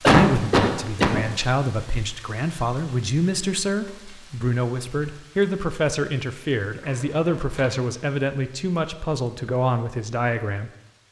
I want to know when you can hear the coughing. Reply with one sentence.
You can hear the coughing from 0.0 to 1.2 s and from 6.8 to 7.8 s.